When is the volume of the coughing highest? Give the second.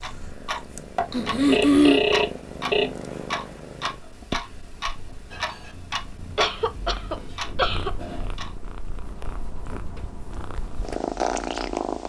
2 s.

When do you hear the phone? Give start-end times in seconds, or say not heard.
1.5-2.9.